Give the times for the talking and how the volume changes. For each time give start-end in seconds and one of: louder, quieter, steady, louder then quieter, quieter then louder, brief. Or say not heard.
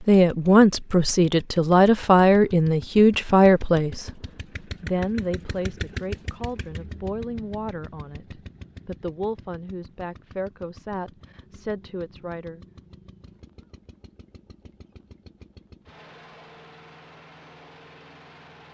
0.0-12.6 quieter.